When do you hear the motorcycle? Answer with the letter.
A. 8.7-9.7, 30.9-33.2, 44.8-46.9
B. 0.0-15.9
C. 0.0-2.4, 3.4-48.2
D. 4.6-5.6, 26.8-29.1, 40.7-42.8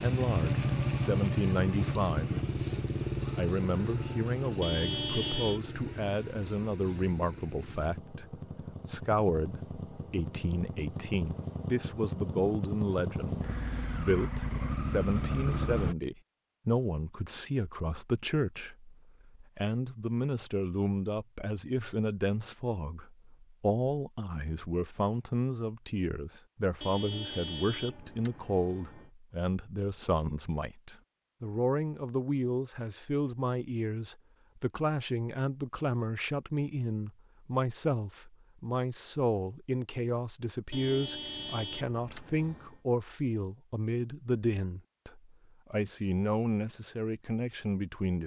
B.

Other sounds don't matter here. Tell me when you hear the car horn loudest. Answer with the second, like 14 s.
5 s.